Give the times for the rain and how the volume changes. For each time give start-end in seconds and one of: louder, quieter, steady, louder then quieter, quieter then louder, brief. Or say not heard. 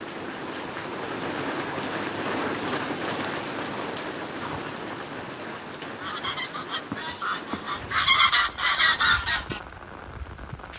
0.0-10.7 quieter.